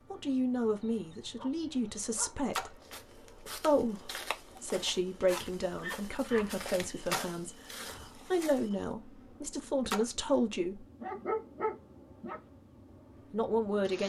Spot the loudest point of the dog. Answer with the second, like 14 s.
11 s.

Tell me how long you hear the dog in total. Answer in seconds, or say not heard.
4 s.